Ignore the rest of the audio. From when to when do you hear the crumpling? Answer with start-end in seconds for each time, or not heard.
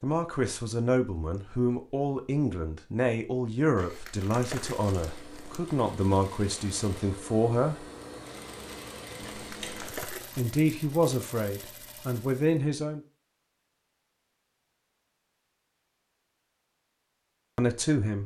3.8-5.6, 9.2-10.5.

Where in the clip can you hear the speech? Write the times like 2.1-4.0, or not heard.
0.0-7.8, 10.3-13.0, 17.6-18.2.